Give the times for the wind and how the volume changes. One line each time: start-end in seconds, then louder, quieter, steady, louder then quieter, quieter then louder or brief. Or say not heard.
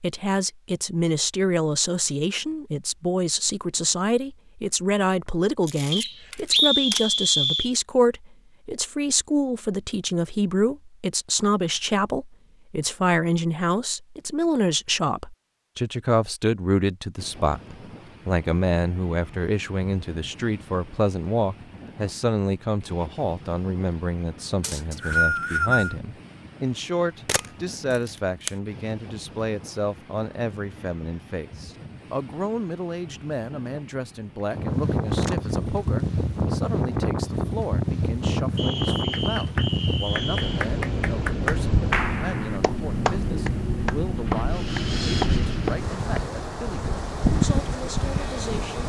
17.1-48.8 louder.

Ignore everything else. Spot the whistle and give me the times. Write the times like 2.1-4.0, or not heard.
5.9-7.7, 24.6-25.9, 38.5-40.6.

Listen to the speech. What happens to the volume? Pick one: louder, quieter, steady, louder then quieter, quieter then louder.
quieter.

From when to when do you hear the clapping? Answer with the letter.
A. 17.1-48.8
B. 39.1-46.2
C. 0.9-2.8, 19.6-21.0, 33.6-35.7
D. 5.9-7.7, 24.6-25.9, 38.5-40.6
B.